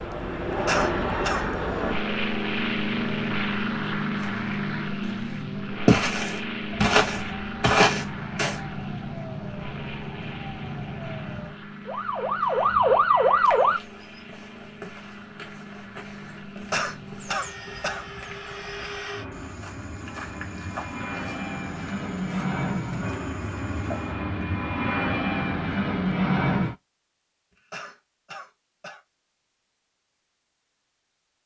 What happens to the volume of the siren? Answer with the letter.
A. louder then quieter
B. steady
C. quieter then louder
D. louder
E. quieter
D.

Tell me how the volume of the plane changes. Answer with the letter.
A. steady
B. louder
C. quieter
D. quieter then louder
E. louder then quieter
D.